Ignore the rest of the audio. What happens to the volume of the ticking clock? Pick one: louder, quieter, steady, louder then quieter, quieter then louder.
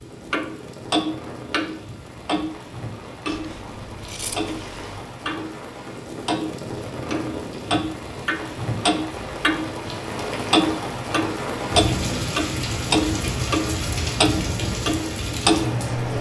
quieter then louder.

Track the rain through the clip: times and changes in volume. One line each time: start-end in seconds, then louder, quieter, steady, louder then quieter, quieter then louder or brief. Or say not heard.
0.0-16.1 louder.